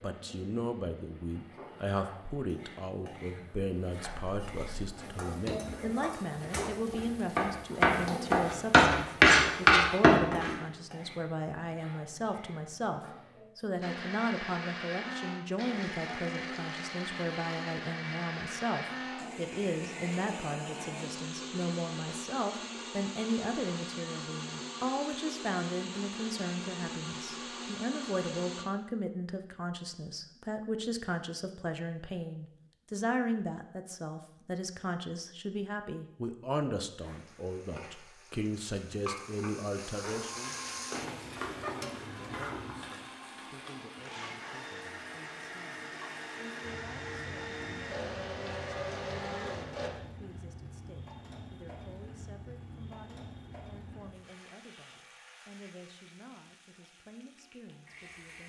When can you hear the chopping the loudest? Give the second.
9 s.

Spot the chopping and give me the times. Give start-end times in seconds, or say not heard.
4.0-10.6.